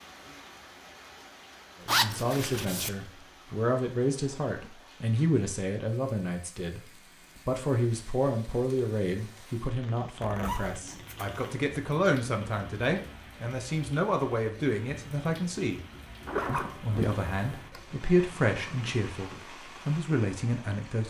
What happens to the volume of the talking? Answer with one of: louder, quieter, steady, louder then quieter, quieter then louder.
steady.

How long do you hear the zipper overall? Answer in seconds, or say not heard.
4 s.